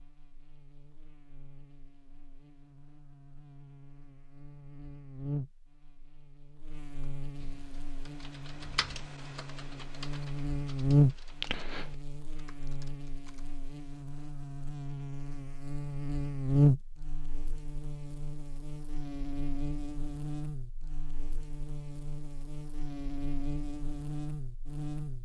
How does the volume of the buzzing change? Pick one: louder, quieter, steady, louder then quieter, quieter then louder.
louder then quieter.